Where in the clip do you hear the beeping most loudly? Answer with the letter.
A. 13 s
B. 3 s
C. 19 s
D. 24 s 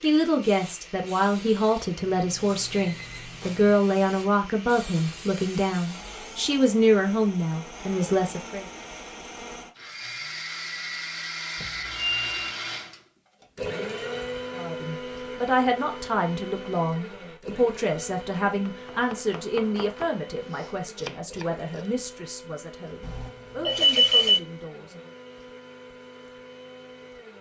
D.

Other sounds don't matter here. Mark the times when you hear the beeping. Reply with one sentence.
The beeping can be heard from 1.9 to 3.8 s, from 11.6 to 12.5 s and from 23.0 to 24.4 s.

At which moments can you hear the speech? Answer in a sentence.
The speech can be heard from 0.0 to 8.7 s and from 14.5 to 25.1 s.